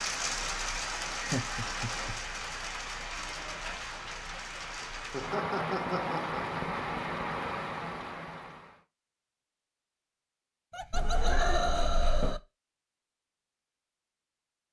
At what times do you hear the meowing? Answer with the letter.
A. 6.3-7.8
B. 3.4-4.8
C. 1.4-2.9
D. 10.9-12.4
D.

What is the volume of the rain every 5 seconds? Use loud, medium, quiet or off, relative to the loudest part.
loud, loud, off.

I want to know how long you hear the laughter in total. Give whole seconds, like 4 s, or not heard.
4 s.